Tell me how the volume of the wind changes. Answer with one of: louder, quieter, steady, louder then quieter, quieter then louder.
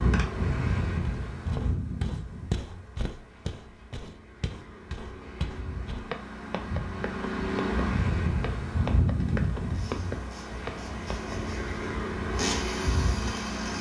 quieter then louder.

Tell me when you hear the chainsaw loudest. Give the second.
13 s.